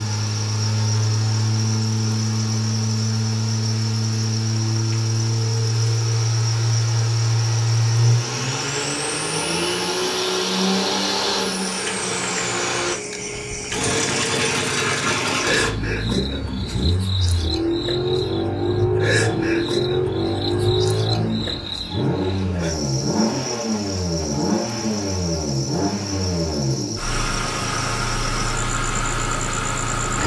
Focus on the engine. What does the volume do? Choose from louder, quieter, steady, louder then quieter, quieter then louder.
steady.